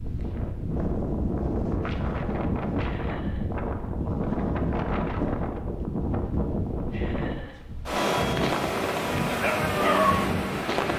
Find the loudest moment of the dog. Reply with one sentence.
The volume of the dog peaks at 10 seconds.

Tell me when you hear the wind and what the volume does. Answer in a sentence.
The wind can be heard from 0.0 to 10.9 s, at a steady volume.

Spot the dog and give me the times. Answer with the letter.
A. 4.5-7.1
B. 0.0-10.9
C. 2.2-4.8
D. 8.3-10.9
D.